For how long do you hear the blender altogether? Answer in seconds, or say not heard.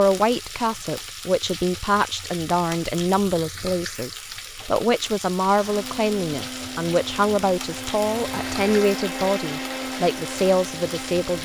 6 s.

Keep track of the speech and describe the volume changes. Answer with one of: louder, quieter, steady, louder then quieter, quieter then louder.
steady.